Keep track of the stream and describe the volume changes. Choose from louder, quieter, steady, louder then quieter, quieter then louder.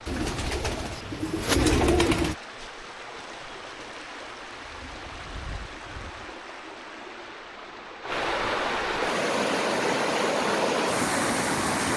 louder.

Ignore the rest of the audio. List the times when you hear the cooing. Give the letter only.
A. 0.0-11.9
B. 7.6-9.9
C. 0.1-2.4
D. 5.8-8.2
C.